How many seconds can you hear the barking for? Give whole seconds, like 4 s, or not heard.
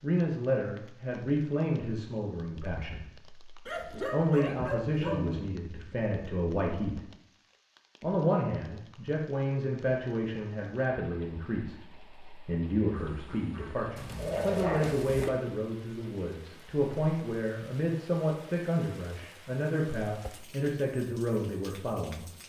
3 s.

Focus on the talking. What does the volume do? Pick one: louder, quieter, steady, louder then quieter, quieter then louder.
steady.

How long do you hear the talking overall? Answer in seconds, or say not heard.
21 s.